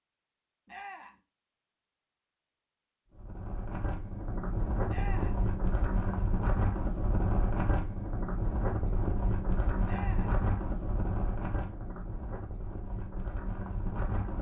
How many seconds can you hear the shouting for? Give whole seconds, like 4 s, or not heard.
2 s.